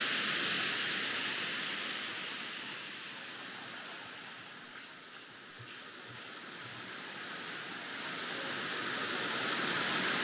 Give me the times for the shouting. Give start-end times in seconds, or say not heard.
not heard.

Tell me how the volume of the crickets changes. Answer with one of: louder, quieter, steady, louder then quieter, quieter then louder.
louder then quieter.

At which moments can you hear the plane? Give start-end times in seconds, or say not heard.
not heard.